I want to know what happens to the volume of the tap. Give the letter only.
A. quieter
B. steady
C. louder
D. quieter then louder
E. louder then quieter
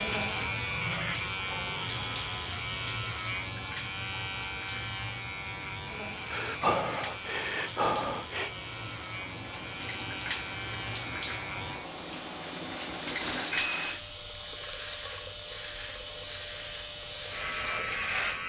C.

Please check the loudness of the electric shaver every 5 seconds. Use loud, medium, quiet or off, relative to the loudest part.
loud, medium, medium, loud.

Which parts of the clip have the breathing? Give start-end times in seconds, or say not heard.
6.3-8.5.